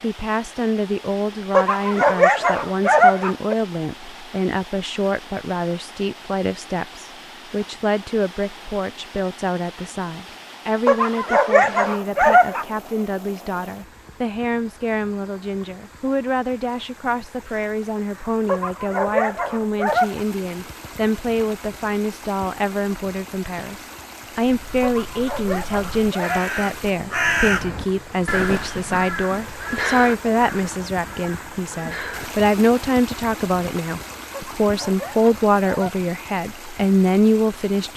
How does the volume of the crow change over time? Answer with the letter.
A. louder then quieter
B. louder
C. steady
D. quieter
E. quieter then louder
A.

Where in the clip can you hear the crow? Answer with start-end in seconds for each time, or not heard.
24.5-32.3.